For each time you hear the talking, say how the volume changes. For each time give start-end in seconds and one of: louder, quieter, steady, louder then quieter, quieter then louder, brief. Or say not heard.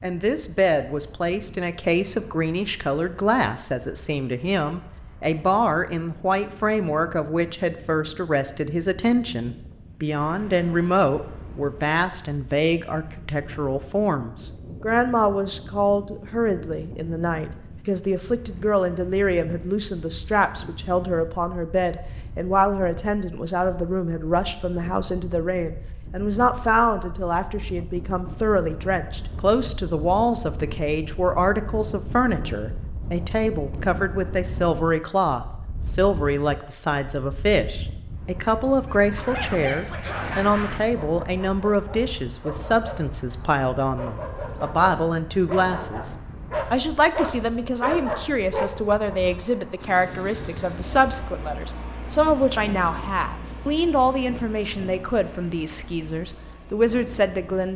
0.0-57.7 steady.